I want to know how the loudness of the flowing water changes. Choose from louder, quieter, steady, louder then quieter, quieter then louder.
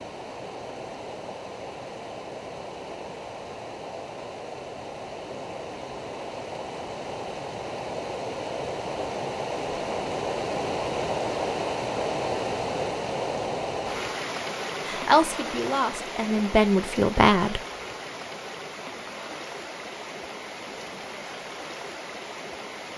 louder then quieter.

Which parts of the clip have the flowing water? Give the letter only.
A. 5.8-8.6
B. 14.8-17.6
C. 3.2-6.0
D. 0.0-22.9
D.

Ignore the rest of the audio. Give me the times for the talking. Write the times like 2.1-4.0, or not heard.
14.8-17.6.